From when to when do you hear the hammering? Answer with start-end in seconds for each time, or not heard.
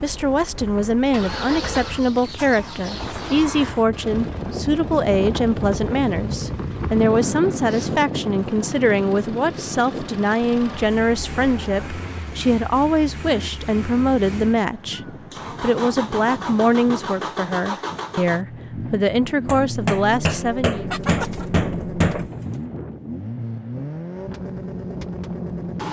19.4-22.2.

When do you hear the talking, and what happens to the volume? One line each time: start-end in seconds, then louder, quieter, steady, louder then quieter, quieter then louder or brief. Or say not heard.
0.0-20.9 steady.